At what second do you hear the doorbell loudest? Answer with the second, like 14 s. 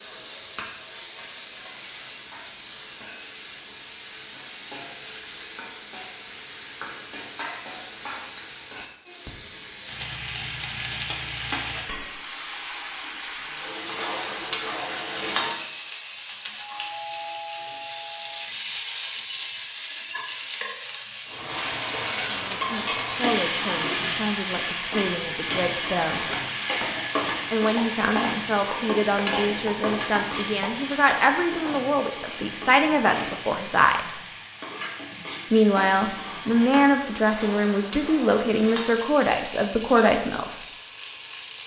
17 s.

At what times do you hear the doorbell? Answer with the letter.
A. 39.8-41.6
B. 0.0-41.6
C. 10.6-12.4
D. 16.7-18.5
D.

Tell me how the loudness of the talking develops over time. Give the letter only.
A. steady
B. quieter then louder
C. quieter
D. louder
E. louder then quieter
D.